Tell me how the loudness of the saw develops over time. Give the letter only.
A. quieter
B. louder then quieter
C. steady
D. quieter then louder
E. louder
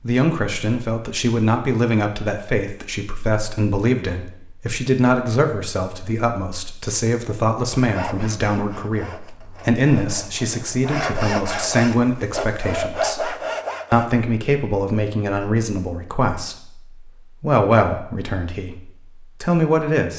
E.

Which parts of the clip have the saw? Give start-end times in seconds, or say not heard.
7.8-14.2.